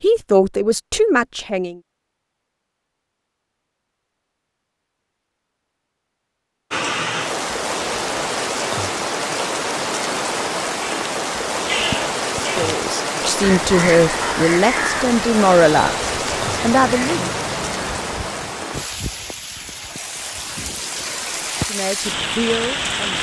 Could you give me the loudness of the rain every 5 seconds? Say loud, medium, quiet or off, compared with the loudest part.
off, loud, loud, loud, loud.